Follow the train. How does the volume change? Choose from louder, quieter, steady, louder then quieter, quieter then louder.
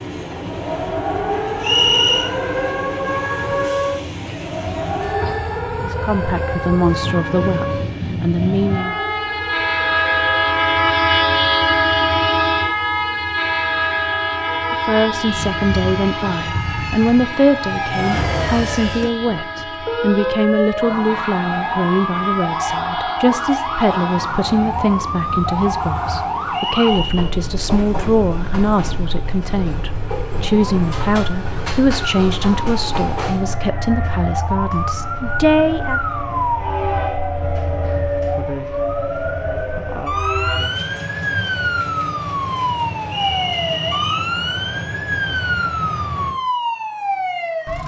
louder then quieter.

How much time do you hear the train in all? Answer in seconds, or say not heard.
46 s.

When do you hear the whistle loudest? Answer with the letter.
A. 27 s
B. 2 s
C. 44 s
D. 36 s
B.